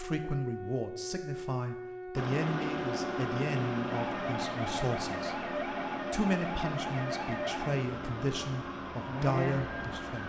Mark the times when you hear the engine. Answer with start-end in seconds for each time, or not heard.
2.1-10.2.